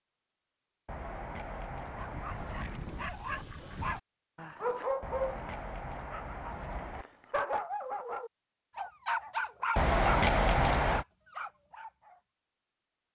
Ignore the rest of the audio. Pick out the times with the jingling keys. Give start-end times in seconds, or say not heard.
0.8-2.8, 5.0-7.0, 9.8-11.1.